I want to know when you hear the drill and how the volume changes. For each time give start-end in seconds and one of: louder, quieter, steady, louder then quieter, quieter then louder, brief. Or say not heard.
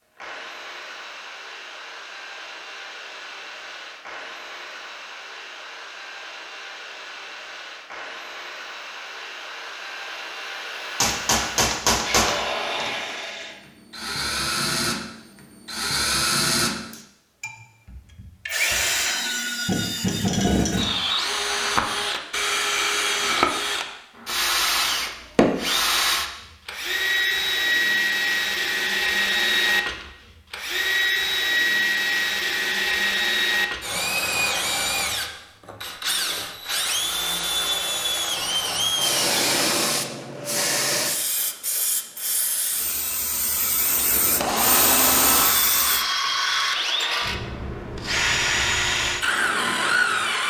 0.1-39.9 louder
43.8-50.4 steady.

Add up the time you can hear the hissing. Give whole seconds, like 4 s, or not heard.
7 s.